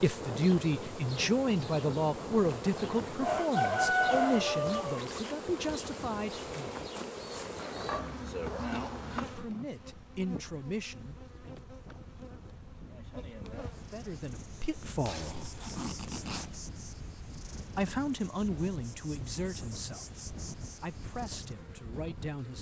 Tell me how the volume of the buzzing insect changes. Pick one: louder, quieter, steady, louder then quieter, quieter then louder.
quieter.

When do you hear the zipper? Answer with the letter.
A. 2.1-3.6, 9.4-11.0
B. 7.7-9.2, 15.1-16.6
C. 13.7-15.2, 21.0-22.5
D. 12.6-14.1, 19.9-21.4
B.